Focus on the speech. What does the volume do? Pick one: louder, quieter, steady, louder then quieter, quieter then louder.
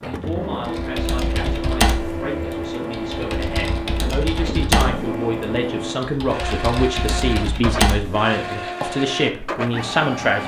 louder.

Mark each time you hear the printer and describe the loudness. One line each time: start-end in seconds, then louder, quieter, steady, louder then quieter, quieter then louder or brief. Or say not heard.
0.0-10.4 steady.